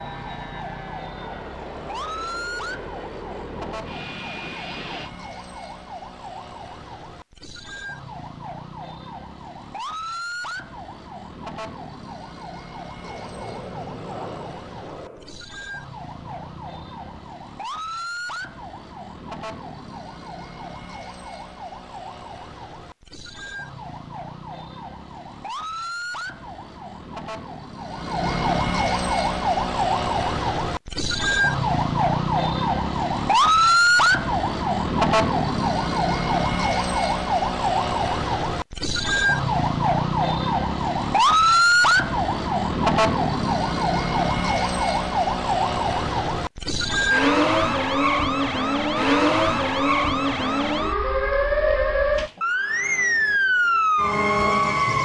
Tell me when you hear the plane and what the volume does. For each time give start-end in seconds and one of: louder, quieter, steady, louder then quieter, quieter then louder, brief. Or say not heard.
0.0-5.1 steady
12.9-17.1 quieter then louder.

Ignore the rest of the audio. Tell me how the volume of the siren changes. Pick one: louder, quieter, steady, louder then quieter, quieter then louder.
louder.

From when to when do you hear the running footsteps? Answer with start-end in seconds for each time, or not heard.
not heard.